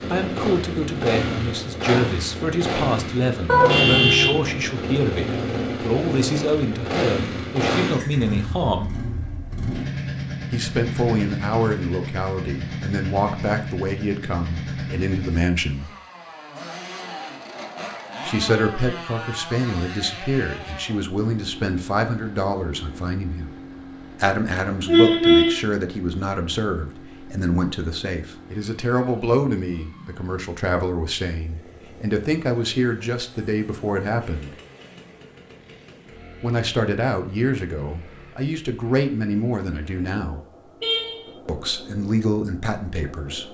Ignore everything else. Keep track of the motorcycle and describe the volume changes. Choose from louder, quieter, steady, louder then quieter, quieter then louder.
quieter.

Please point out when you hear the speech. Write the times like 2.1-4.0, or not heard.
0.1-8.9, 10.5-15.9, 18.2-23.6, 24.2-34.5, 36.4-40.4, 41.5-43.4.